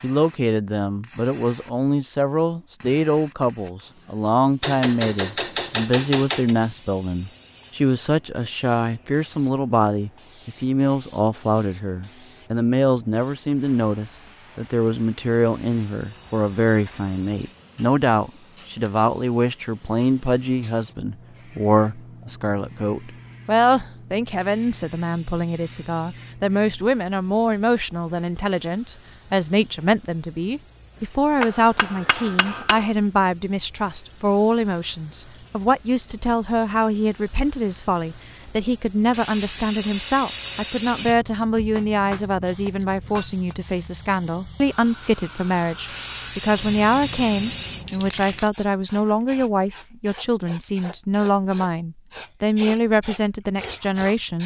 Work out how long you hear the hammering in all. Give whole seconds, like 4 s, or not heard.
5 s.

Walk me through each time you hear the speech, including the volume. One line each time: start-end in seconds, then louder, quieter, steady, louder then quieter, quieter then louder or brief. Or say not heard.
0.0-54.4 steady.